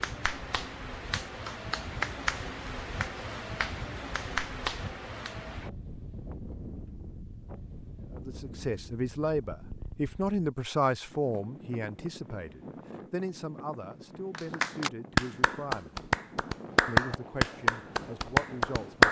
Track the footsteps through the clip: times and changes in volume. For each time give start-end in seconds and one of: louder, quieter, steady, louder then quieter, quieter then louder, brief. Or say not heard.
not heard.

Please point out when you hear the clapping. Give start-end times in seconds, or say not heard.
0.0-5.3, 14.3-19.0.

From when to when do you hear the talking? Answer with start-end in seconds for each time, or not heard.
8.2-15.9, 16.9-19.0.